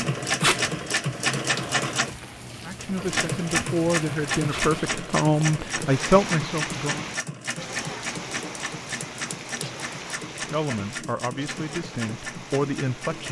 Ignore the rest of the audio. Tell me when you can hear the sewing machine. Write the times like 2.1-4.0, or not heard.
0.0-13.2.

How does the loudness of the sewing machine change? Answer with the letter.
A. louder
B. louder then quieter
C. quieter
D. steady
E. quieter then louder
C.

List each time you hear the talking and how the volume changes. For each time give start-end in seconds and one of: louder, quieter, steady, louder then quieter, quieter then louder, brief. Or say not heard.
2.6-7.0 louder
10.4-13.2 brief.